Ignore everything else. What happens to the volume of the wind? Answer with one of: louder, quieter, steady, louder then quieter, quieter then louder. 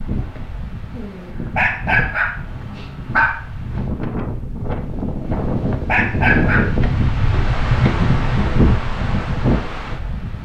louder.